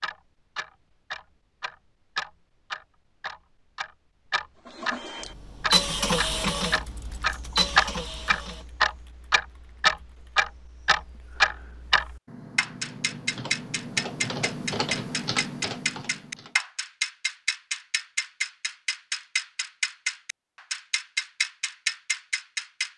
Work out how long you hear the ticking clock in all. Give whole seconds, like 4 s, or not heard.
23 s.